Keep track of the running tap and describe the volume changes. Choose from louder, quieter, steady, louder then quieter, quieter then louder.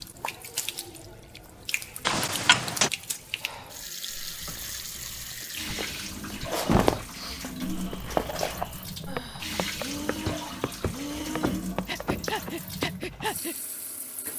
steady.